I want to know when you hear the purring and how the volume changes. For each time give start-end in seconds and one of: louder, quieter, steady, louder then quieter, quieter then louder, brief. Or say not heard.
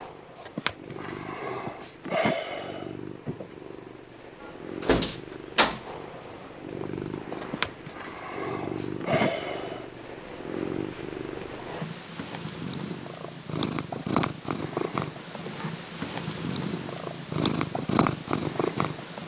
0.0-19.2 louder.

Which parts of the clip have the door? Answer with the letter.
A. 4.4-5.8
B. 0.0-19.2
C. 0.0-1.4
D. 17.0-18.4
A.